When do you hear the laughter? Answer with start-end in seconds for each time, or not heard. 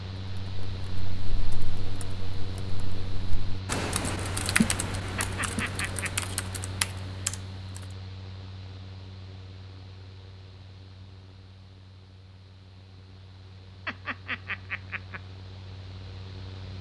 5.2-6.1, 13.8-15.2.